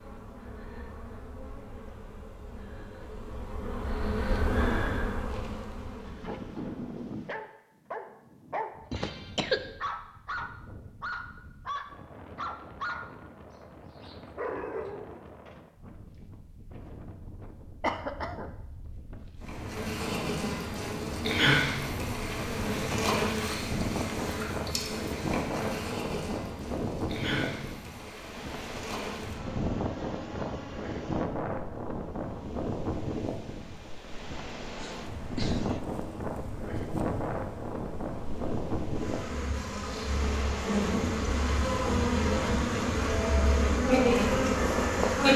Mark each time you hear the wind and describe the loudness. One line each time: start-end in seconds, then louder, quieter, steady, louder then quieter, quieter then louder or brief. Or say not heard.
8.7-45.2 louder.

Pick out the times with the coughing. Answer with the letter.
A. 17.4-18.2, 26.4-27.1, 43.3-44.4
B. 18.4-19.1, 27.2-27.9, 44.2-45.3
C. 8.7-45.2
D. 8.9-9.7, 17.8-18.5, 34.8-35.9
D.